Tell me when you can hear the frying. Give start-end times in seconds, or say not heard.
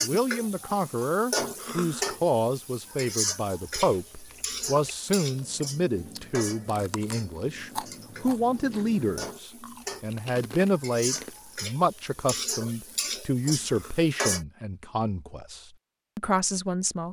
0.0-14.4.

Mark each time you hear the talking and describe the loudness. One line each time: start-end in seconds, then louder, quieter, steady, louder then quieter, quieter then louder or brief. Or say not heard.
0.0-17.0 steady.